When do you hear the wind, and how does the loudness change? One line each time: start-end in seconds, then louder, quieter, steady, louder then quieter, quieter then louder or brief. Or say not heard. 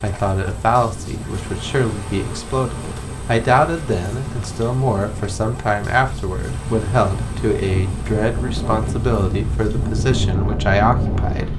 0.0-11.5 louder.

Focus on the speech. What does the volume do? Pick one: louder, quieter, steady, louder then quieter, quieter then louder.
steady.